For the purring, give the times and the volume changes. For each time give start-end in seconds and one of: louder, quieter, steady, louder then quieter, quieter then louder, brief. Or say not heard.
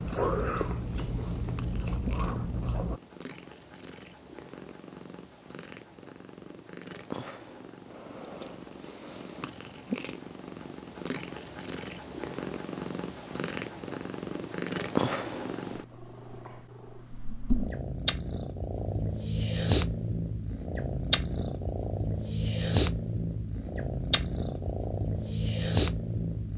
0.0-26.5 louder.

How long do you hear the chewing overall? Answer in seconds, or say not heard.
3 s.